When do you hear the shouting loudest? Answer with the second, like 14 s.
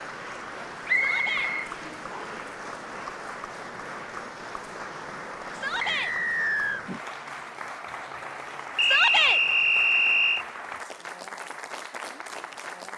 9 s.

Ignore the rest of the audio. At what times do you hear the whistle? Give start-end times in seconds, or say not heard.
0.8-2.4, 5.8-6.8, 8.8-10.4.